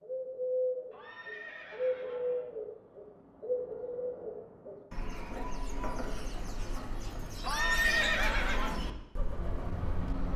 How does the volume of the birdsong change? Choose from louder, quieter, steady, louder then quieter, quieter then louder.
quieter.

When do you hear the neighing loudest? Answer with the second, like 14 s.
8 s.